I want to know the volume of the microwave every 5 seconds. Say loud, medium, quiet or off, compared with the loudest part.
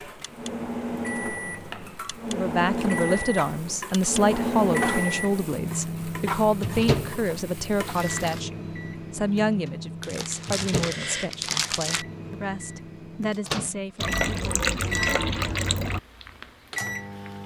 loud, loud, medium, medium.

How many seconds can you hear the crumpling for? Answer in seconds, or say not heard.
2 s.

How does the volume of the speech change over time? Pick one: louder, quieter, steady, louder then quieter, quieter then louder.
quieter.